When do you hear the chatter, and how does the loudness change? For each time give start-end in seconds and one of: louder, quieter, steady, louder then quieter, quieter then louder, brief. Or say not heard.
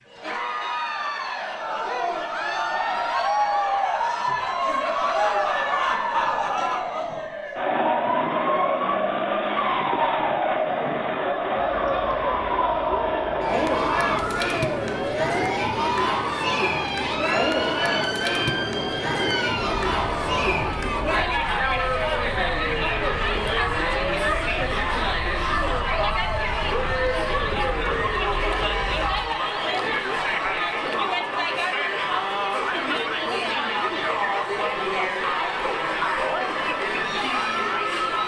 0.1-38.2 steady.